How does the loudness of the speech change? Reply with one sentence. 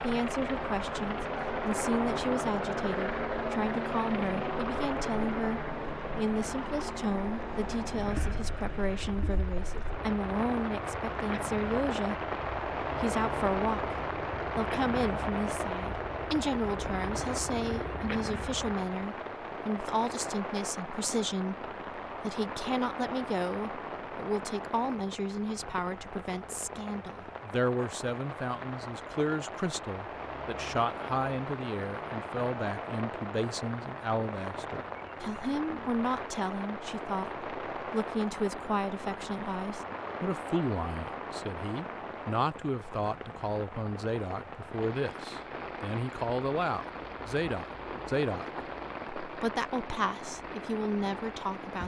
The loudness of the speech stays about the same.